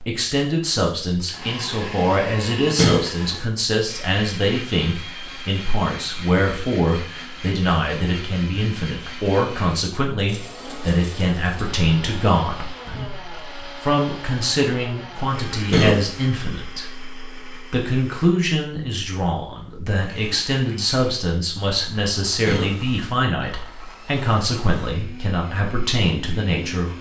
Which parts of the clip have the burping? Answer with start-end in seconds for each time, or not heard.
2.8-3.5, 15.7-16.3, 22.4-22.9.